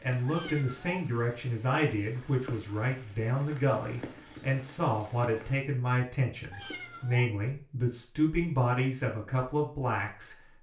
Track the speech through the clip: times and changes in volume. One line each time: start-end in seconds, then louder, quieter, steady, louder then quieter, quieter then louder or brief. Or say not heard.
0.0-10.3 steady.